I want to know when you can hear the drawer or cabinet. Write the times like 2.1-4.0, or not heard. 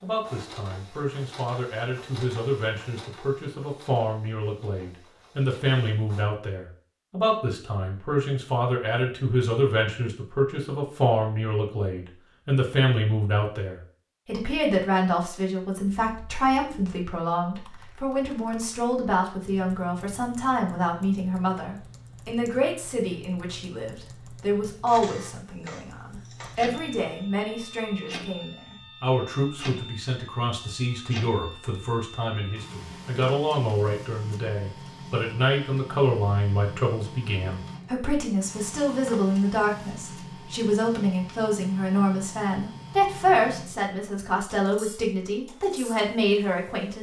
not heard.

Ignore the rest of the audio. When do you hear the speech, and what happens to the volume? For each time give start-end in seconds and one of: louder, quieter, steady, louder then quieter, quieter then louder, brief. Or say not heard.
0.0-46.9 steady.